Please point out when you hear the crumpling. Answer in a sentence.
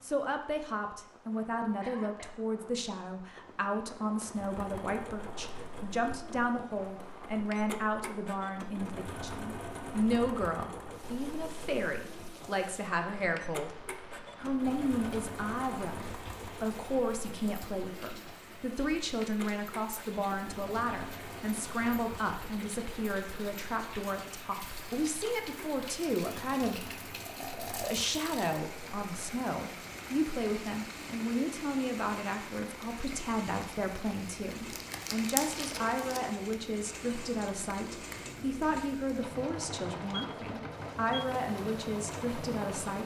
You can hear the crumpling from 34.5 to 36.2 s.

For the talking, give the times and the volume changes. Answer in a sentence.
You can hear the talking from 0.0 to 13.8 s, at a steady volume; and from 14.4 to 43.0 s, at a steady volume.